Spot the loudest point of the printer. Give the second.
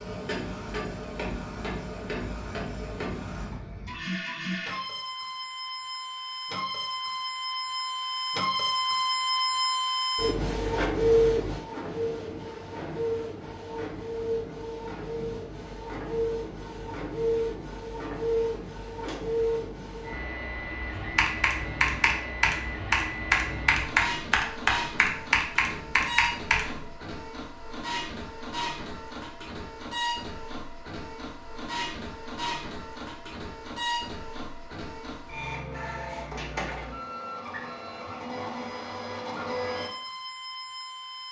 11 s.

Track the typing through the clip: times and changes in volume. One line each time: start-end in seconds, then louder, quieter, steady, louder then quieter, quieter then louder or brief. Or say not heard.
20.9-26.9 steady.